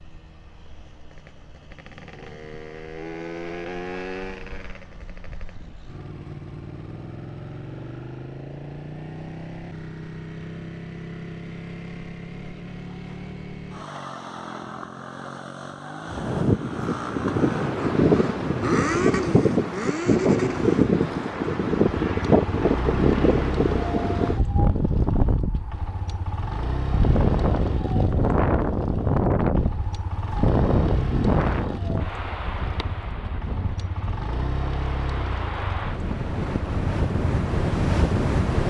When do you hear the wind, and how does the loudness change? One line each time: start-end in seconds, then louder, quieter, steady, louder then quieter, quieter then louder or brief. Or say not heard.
16.1-38.6 quieter.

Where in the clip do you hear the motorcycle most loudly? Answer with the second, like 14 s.
19 s.